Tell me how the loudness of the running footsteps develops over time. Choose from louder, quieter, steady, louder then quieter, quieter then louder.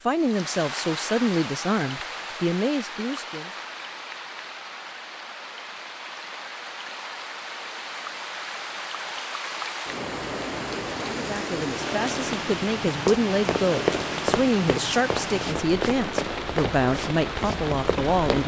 quieter.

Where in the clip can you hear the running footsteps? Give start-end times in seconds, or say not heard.
12.8-18.4.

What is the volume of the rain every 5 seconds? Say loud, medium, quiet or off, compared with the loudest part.
medium, medium, loud, loud.